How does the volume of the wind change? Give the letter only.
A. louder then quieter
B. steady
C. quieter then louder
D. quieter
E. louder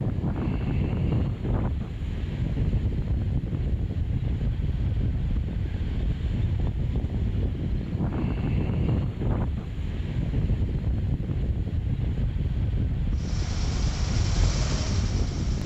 B.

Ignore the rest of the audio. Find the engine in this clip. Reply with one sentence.
The engine can be heard from 13.1 to 15.6 s.